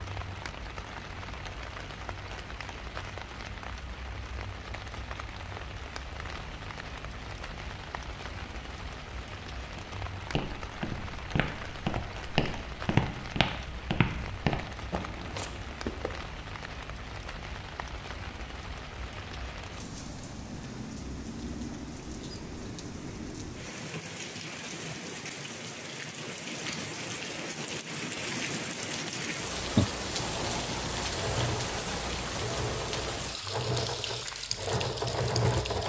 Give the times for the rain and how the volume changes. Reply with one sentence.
You can hear the rain from 0.0 to 35.8 s, getting louder.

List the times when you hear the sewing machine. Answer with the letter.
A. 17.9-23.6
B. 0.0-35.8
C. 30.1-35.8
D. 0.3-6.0
C.